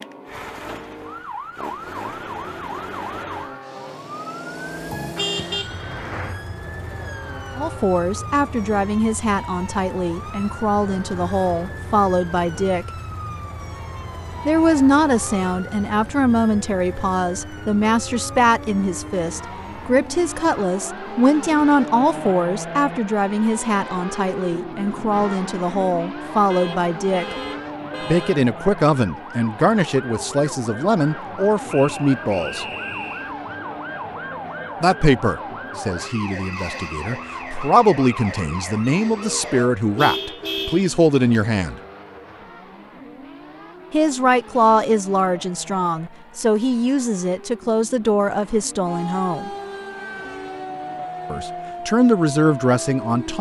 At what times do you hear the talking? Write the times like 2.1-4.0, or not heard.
7.5-12.9, 14.4-27.4, 28.1-32.6, 34.8-41.8, 43.9-49.5, 51.3-53.3.